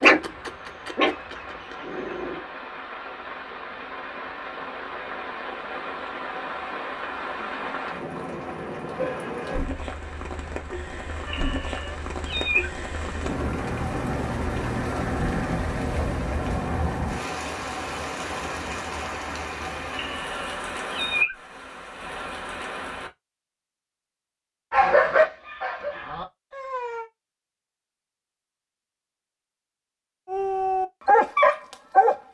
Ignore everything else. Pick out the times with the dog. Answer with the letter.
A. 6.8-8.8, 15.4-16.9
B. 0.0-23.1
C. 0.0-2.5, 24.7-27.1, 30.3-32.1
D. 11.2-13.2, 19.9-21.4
C.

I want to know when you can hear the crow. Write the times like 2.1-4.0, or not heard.
not heard.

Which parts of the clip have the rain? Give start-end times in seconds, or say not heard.
0.0-23.1.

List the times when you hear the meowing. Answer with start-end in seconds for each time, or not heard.
11.2-13.2, 19.9-21.4.